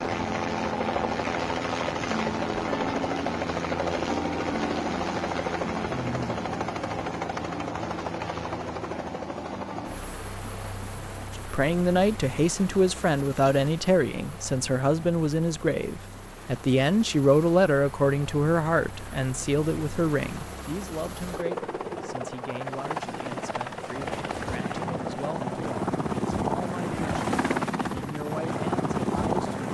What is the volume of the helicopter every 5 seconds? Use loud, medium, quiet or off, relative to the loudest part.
loud, loud, quiet, quiet, medium, loud.